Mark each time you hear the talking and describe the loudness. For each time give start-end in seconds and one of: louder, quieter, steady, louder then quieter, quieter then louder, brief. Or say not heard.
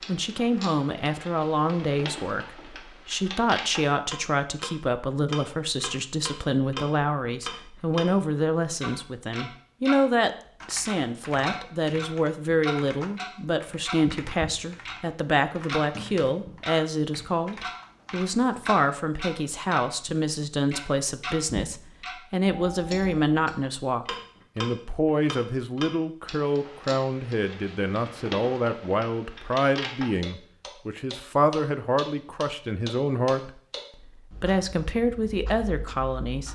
0.1-36.5 steady.